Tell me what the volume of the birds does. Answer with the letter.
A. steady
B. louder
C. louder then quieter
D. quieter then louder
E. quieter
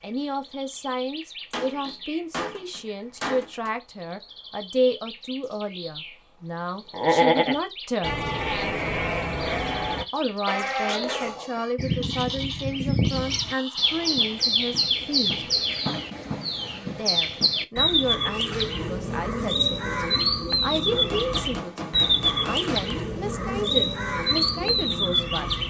B.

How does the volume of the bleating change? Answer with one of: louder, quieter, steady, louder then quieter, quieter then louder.
quieter.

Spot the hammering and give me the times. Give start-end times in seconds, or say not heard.
1.5-3.7, 20.9-22.9.